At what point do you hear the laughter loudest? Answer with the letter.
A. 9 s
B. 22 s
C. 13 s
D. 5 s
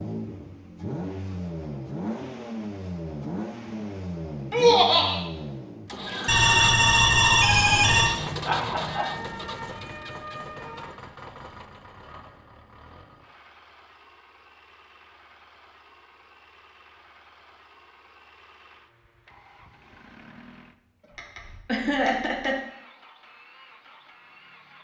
D.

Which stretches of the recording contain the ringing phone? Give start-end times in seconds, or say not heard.
6.2-8.1.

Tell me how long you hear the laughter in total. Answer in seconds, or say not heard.
3 s.